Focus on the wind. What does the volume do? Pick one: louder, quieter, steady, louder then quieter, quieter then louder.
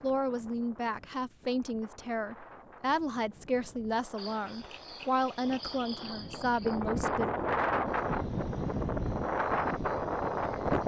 louder.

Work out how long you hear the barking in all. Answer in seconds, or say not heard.
not heard.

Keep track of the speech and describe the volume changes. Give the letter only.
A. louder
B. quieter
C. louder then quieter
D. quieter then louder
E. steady
E.